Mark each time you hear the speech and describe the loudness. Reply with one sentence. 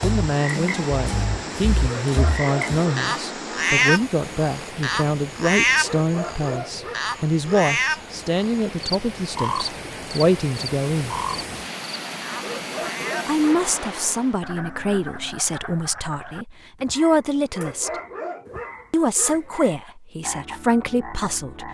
You can hear the speech from 0.0 to 11.2 s, at a steady volume; from 13.2 to 17.9 s, getting quieter then louder; and briefly from 18.9 to 21.6 s.